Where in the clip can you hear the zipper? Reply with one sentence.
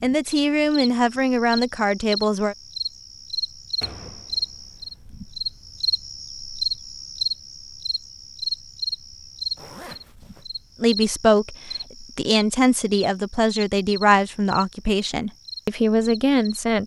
You can hear the zipper from 9.6 to 10.4 s.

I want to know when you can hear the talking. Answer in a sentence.
The talking can be heard from 0.0 to 2.5 s and from 10.8 to 16.8 s.